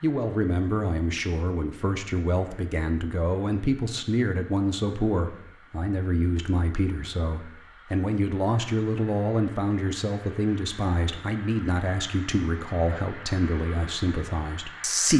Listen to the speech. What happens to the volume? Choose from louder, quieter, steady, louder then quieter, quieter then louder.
steady.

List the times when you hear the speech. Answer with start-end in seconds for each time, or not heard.
0.0-15.1.